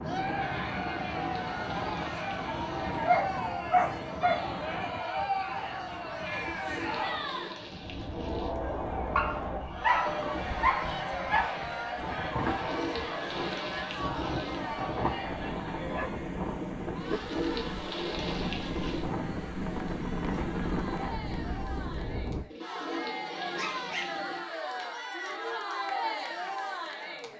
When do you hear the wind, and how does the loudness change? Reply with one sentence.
The wind can be heard from 0.0 to 22.4 s, getting quieter then louder.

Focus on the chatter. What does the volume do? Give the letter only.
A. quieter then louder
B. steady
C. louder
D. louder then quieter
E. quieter
A.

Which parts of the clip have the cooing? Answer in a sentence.
You can hear the cooing from 1.0 to 3.0 s, from 6.3 to 8.6 s, from 12.3 to 14.7 s, from 17.0 to 19.1 s and from 22.5 to 24.5 s.